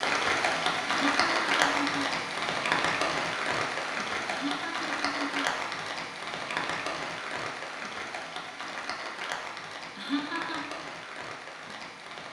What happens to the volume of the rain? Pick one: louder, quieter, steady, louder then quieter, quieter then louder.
quieter.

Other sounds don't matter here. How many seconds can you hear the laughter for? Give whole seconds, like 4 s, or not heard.
3 s.